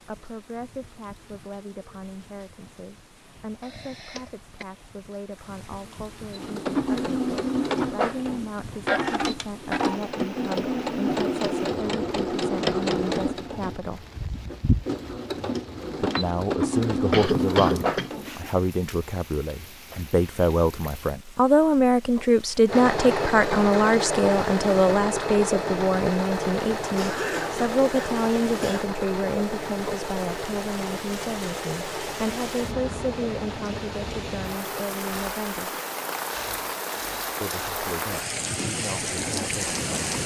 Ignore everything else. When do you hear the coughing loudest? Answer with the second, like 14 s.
17 s.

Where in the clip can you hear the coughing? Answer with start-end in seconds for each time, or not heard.
3.6-4.7, 16.5-18.1, 26.9-28.9.